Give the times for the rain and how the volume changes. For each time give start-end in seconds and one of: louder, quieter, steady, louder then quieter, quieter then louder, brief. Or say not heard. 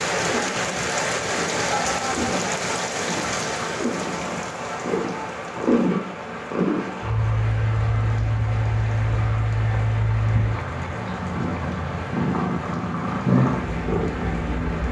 0.0-14.8 quieter.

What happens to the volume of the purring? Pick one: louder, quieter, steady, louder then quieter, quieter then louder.
louder.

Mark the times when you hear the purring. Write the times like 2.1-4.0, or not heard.
0.2-14.8.